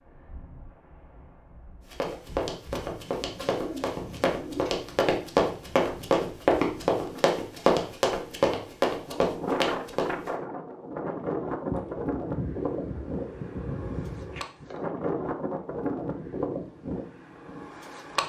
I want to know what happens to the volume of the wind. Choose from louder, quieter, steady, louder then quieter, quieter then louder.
louder.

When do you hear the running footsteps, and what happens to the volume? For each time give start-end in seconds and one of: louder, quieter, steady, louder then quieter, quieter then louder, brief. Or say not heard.
1.9-10.3 louder.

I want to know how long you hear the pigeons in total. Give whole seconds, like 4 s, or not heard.
4 s.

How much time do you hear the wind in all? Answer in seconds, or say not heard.
18 s.